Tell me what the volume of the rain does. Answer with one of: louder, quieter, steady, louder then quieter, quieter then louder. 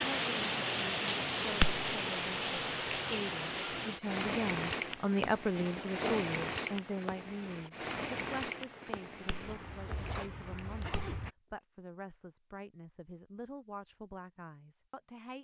quieter.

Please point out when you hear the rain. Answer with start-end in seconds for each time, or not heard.
0.0-11.3.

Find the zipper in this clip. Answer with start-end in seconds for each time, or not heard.
5.5-6.2, 9.4-11.2.